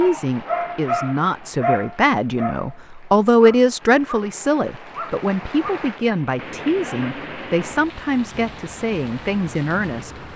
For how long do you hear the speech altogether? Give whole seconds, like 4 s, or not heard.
10 s.